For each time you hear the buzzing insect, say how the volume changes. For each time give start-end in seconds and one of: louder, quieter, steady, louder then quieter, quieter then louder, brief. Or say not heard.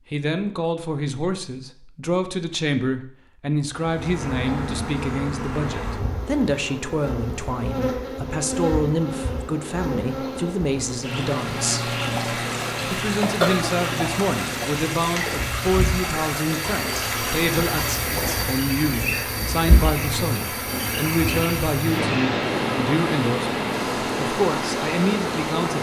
3.7-25.7 steady.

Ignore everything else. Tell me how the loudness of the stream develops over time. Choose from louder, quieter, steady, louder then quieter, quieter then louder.
steady.